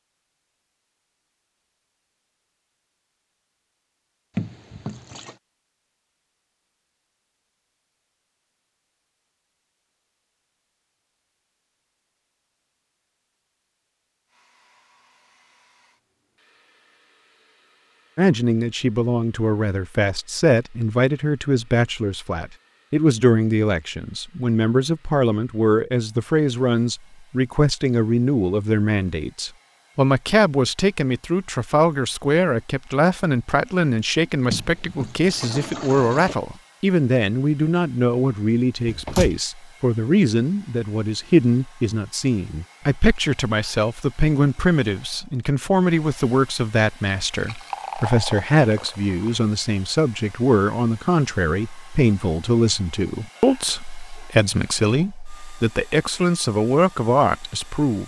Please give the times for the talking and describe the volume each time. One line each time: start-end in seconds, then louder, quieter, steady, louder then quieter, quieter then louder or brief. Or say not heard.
18.1-58.0 steady.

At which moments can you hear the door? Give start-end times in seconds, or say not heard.
38.9-39.4.